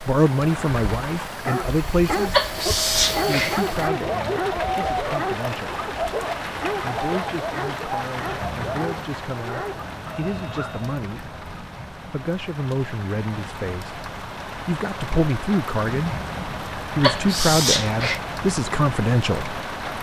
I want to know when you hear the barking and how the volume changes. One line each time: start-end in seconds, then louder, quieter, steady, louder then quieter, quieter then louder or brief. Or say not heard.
1.2-11.0 quieter.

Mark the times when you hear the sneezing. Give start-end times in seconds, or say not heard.
2.3-3.5, 17.0-18.2.